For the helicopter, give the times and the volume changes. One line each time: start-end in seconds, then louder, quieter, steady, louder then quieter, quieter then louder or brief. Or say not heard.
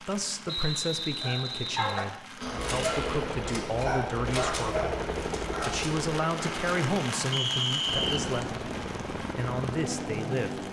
2.4-10.6 steady.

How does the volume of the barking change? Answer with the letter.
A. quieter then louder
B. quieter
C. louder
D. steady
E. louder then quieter
B.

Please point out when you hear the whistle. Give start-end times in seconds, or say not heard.
0.5-2.1, 7.3-8.2.